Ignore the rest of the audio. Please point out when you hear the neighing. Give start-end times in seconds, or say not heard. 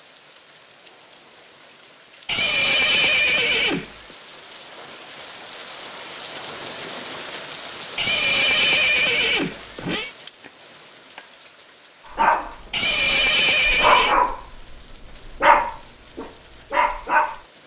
2.2-4.2, 8.0-10.1, 12.7-14.2.